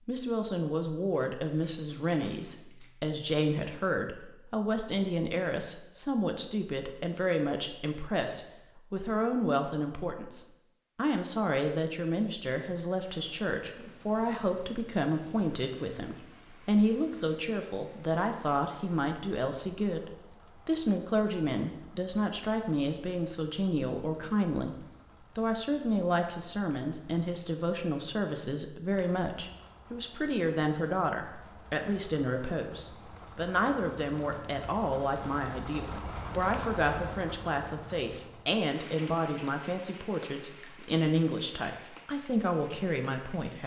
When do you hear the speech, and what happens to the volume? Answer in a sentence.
The speech can be heard from 0.1 to 24.8 s, at a steady volume; and from 25.4 to 43.6 s, at a steady volume.